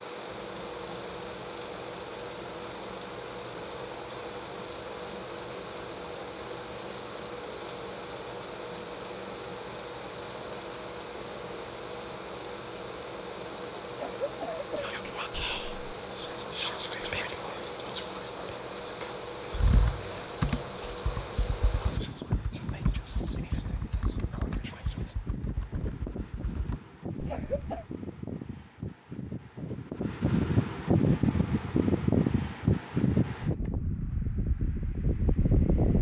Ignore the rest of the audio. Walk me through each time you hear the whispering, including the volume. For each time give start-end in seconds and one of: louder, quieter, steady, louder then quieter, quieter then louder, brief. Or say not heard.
14.8-25.1 quieter.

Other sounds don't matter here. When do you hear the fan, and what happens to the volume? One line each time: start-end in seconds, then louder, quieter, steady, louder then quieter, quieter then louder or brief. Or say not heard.
0.0-35.9 louder.